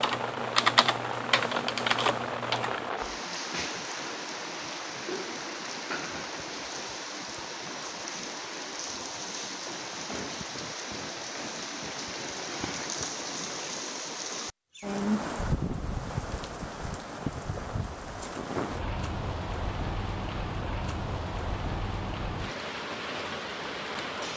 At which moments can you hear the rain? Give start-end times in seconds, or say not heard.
0.0-24.3.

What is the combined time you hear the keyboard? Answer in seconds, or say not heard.
3 s.